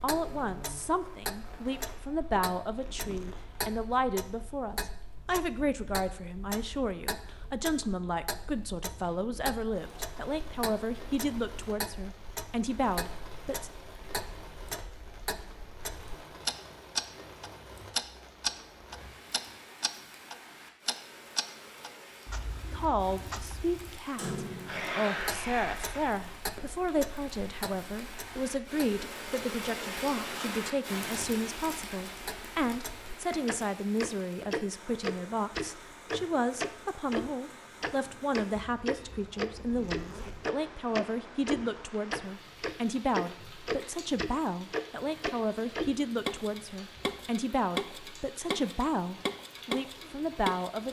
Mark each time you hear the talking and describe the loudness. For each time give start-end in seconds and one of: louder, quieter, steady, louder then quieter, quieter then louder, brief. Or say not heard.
0.0-13.7 steady
22.7-50.8 steady.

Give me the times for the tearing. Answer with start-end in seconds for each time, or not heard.
24.6-26.1.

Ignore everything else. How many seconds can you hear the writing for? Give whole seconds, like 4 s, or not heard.
not heard.